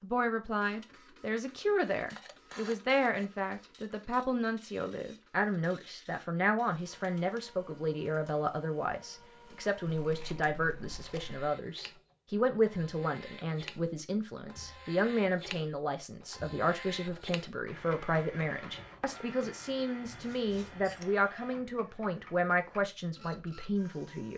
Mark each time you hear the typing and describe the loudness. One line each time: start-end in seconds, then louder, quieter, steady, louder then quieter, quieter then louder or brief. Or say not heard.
not heard.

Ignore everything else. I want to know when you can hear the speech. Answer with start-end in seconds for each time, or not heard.
0.0-24.3.